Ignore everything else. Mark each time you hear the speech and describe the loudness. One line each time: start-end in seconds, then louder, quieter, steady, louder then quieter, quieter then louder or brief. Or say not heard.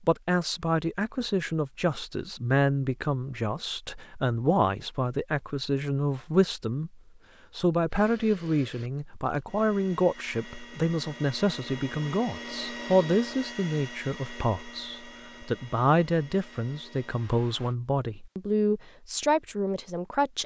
0.0-20.4 steady.